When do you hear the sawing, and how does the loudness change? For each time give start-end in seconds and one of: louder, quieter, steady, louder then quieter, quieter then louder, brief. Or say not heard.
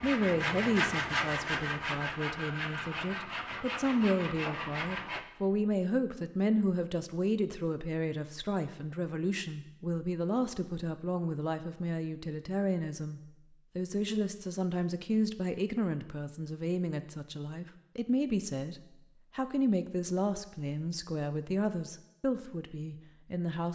0.0-5.2 quieter.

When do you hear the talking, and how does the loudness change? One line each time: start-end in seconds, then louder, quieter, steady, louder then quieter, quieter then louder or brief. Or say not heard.
0.0-23.6 steady.